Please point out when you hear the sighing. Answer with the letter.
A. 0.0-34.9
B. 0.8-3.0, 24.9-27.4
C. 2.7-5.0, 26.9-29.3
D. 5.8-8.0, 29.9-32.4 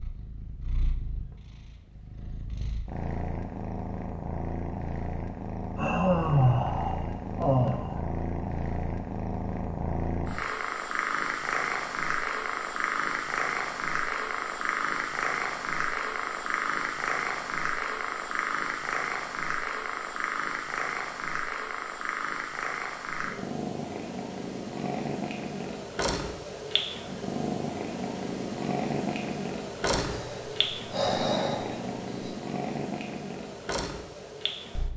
D.